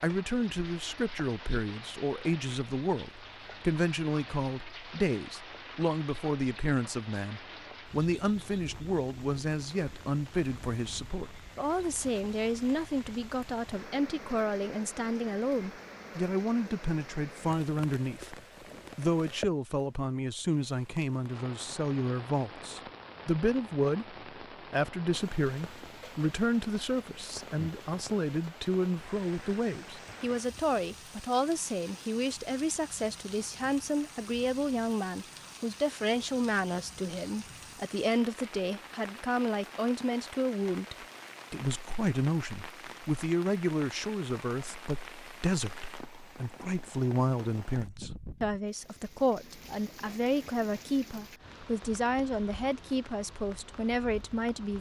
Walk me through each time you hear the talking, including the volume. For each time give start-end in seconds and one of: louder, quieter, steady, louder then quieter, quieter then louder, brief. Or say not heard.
0.0-54.7 steady.